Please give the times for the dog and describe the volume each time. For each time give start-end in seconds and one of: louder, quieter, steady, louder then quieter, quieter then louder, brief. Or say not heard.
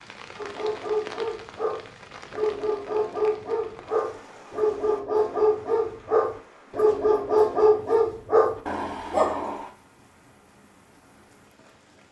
0.3-9.7 louder.